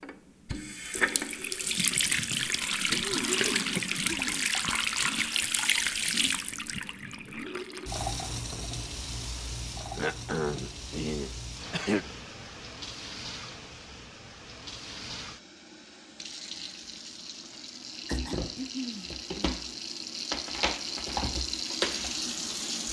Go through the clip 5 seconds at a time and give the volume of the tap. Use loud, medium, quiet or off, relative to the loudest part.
loud, loud, quiet, medium, loud.